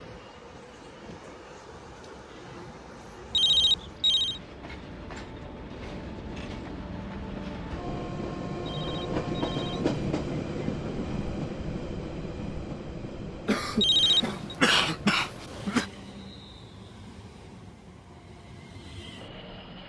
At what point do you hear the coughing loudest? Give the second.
15 s.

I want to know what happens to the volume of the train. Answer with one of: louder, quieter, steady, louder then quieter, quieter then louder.
louder then quieter.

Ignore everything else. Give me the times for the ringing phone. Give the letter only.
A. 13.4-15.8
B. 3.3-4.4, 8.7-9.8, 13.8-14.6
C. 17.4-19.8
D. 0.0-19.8
B.